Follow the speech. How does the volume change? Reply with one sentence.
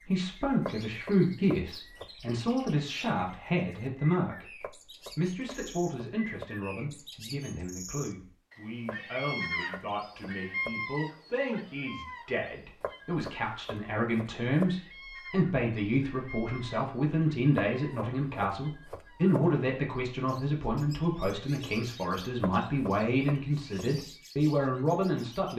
The loudness of the speech goes down, then up.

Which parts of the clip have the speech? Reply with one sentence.
You can hear the speech from 0.0 to 25.5 s.